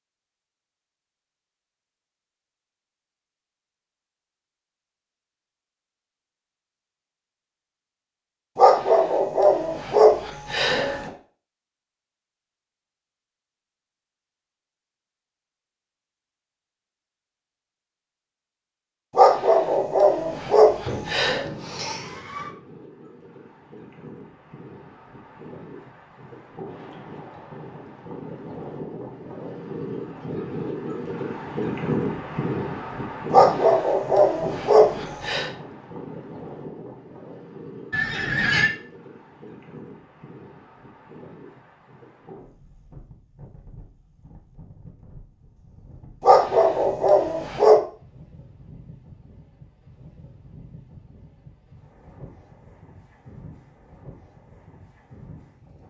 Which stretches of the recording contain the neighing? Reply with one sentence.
The neighing can be heard from 20.8 to 22.6 s and from 37.9 to 38.7 s.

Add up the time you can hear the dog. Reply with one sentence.
You can hear the dog for 9 seconds altogether.